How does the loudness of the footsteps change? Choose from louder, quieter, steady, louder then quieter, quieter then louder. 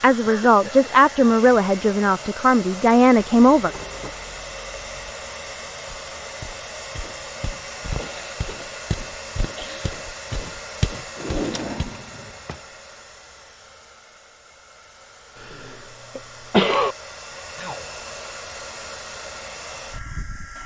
louder.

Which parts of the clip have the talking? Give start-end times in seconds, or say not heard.
0.0-3.7.